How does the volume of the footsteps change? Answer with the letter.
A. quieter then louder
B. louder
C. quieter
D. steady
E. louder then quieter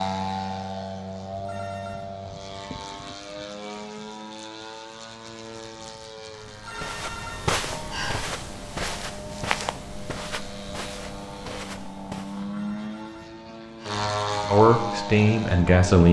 C.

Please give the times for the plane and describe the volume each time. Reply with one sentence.
You can hear the plane from 0.0 to 16.0 s, getting quieter then louder.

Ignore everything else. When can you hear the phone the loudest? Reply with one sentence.
The volume of the phone peaks at 8 seconds.